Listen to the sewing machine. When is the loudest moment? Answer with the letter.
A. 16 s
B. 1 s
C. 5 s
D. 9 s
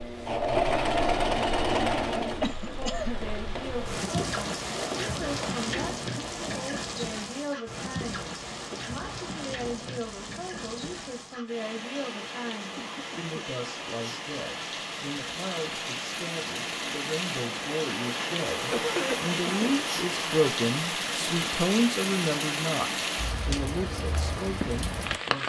B.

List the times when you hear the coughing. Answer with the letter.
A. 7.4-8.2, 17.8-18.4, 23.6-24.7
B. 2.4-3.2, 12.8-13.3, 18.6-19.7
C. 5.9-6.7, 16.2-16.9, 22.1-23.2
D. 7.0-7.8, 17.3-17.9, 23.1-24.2
B.